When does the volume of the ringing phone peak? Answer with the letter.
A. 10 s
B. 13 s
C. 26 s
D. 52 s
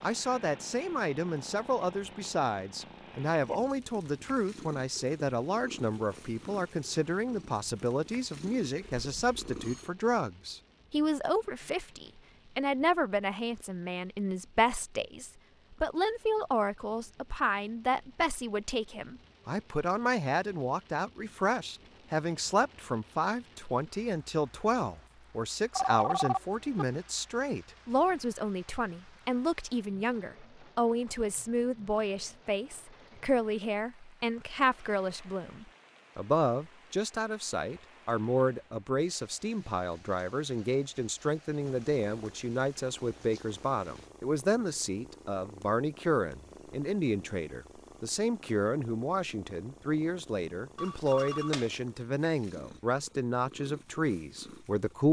C.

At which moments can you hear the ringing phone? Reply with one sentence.
The ringing phone can be heard from 8.8 to 9.9 s, from 25.8 to 26.9 s and from 50.8 to 51.6 s.